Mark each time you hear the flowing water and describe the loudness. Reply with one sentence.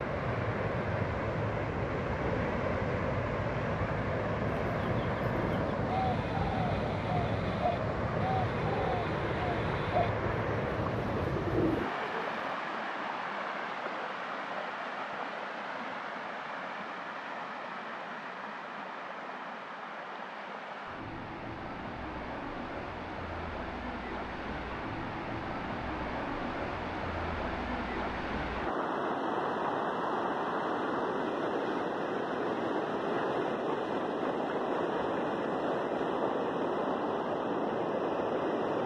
The flowing water can be heard from 0.0 to 38.8 s, getting quieter then louder.